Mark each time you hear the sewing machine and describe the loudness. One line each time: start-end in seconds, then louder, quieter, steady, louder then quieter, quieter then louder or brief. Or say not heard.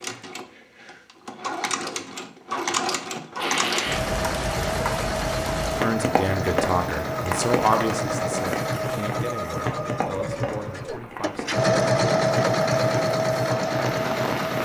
0.0-14.6 louder.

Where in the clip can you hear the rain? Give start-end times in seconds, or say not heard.
3.4-14.6.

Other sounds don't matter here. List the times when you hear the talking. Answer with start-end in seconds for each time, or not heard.
5.8-11.5.